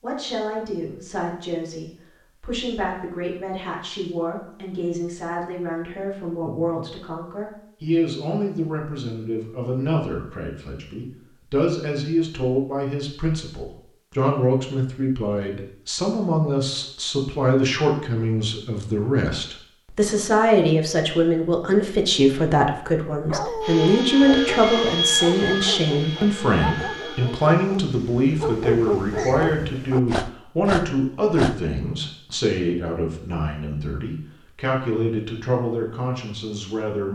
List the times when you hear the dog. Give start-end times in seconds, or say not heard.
23.3-31.6.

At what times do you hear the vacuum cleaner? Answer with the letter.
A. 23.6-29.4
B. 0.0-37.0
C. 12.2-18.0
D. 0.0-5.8
A.